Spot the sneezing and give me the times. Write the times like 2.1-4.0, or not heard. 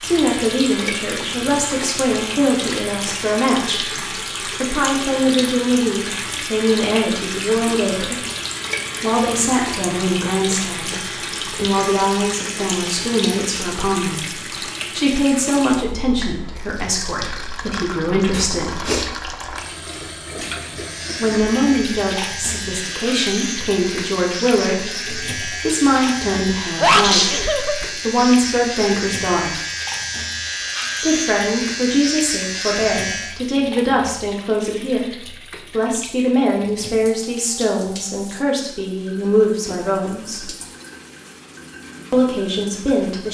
18.3-19.1, 26.3-27.9.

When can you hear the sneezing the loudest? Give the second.
27 s.